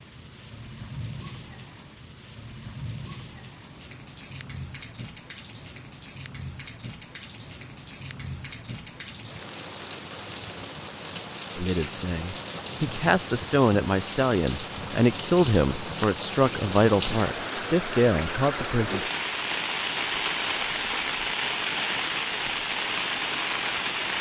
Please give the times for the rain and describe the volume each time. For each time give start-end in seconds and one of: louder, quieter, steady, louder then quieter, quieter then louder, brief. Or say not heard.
0.0-24.1 louder.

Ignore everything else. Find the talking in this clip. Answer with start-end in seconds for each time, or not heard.
11.6-19.1.